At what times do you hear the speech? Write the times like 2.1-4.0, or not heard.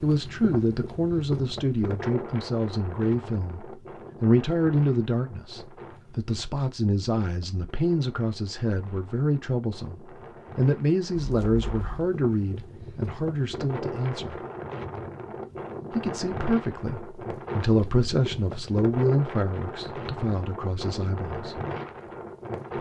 0.0-14.4, 15.9-21.6.